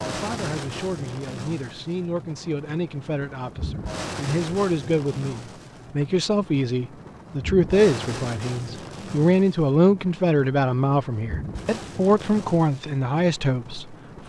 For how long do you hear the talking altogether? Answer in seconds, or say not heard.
14 s.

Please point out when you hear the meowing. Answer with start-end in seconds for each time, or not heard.
not heard.